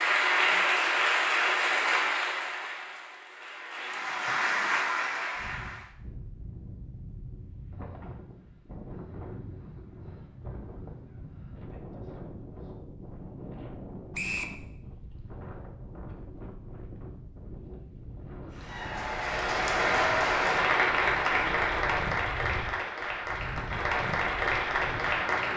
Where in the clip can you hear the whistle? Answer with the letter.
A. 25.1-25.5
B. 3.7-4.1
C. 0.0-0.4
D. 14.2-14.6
D.